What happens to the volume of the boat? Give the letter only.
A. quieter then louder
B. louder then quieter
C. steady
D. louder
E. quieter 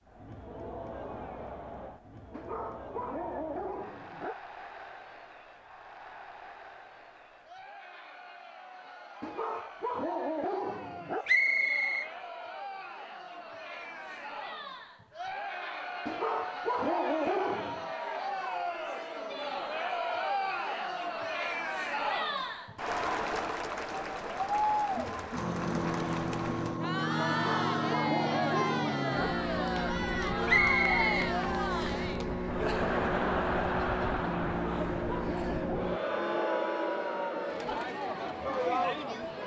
C.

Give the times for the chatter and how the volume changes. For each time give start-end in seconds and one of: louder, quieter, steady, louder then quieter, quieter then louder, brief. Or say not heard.
0.0-39.4 louder.